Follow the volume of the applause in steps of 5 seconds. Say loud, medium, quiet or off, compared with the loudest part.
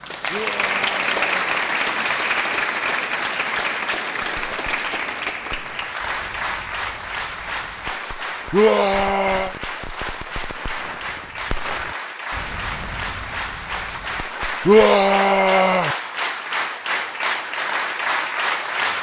loud, medium, medium, loud.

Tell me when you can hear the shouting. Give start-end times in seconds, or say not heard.
0.3-1.5, 8.5-9.6, 14.7-15.9.